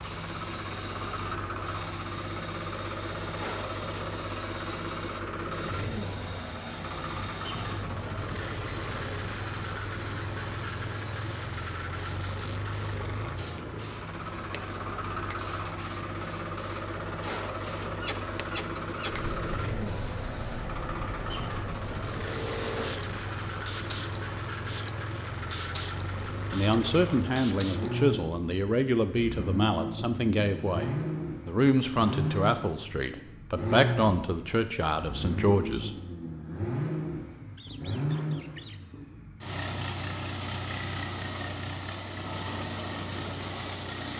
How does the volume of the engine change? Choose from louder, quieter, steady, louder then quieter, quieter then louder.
steady.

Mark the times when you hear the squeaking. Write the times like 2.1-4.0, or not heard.
12.1-12.6, 17.8-19.3, 37.5-38.8.